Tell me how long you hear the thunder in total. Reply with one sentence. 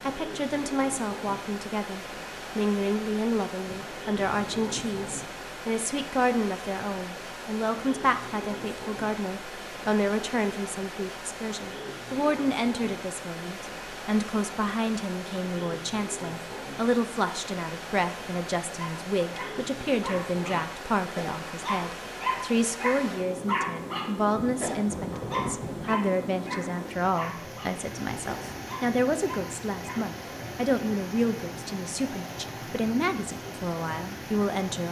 You can hear the thunder for 3 seconds altogether.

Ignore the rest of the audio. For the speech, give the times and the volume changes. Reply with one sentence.
You can hear the speech from 0.0 to 34.8 s, at a steady volume.